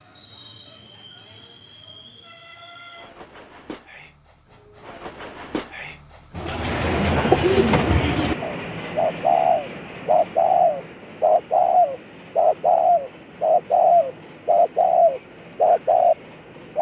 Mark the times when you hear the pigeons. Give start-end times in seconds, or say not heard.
6.3-16.1.